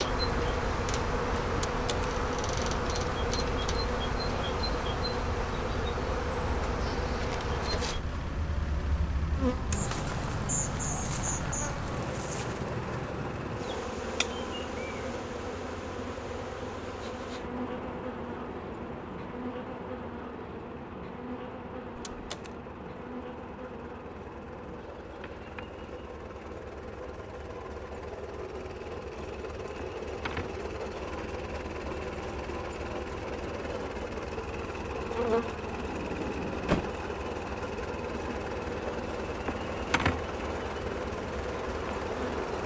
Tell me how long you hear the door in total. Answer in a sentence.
The door can be heard for 2 seconds in total.